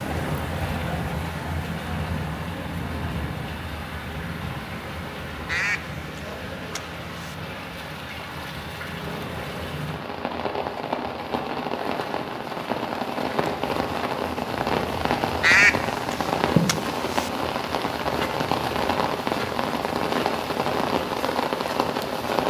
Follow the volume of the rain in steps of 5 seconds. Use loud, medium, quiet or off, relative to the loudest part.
medium, medium, loud, loud, loud.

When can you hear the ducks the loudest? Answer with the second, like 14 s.
16 s.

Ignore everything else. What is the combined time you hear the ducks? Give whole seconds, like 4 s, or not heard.
4 s.